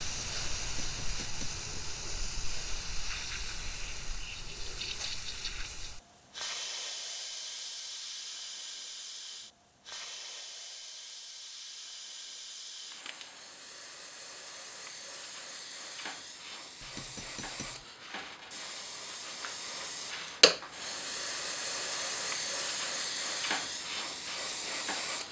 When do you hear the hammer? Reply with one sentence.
The hammer can be heard from 0.6 to 1.6 s and from 16.8 to 17.9 s.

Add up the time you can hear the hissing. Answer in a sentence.
The hissing can be heard for 25 seconds in total.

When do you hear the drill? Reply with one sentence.
You can't hear the drill here.